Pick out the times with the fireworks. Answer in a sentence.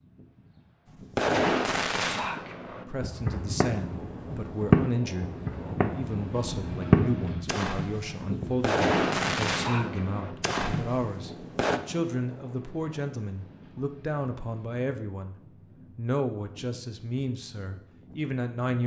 You can hear the fireworks from 1.1 to 11.8 s.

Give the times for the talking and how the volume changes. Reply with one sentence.
The talking can be heard from 2.9 to 15.3 s, at a steady volume; and briefly from 15.9 to 18.8 s.